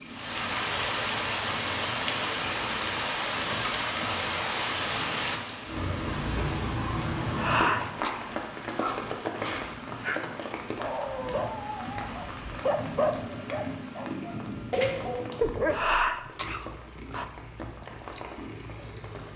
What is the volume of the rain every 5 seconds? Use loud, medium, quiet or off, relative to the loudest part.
loud, loud, quiet, quiet.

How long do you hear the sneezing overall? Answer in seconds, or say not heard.
3 s.